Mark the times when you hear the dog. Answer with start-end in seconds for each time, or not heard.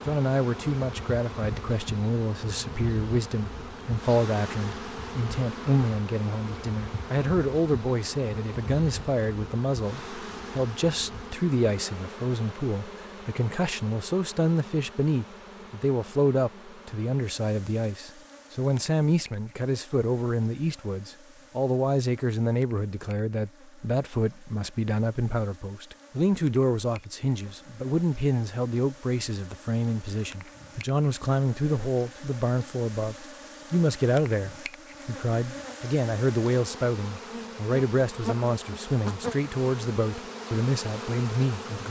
not heard.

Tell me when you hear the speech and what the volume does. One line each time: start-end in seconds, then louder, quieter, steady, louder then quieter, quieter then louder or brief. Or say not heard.
0.1-41.8 steady.